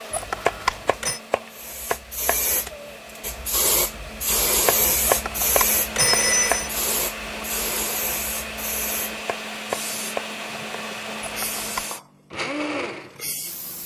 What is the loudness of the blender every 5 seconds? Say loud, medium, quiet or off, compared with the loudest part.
medium, loud, loud.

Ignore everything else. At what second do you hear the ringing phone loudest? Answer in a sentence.
The loudest moment of the ringing phone is at 6 seconds.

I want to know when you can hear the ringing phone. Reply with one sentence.
You can hear the ringing phone from 0.1 to 1.2 s, from 5.0 to 6.7 s and from 11.2 to 11.8 s.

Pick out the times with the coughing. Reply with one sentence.
You can't hear the coughing here.